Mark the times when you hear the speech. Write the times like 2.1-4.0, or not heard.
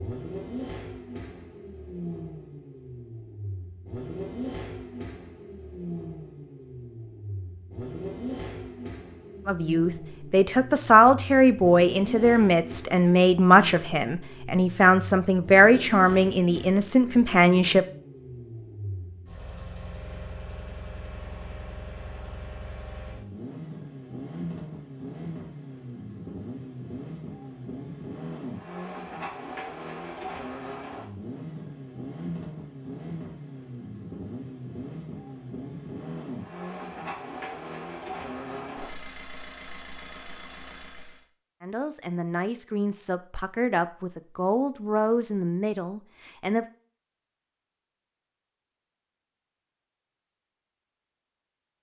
9.4-17.9, 41.6-46.6.